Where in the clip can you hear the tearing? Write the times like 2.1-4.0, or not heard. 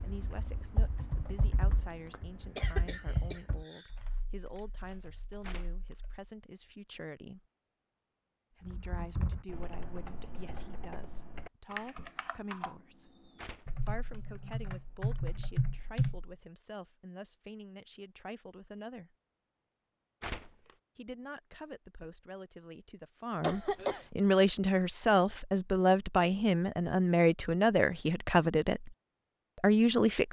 5.4-6.0, 13.3-13.9, 20.2-20.8.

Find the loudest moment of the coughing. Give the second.
24 s.